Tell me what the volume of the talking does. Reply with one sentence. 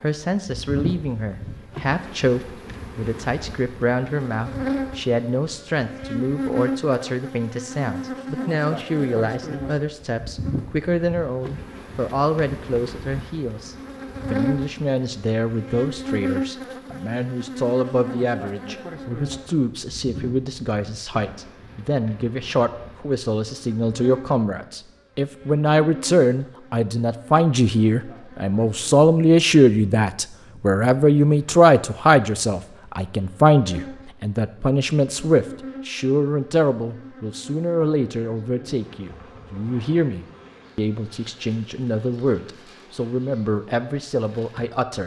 The loudness of the talking goes up, then down.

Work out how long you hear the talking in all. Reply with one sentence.
You can hear the talking for 45 seconds altogether.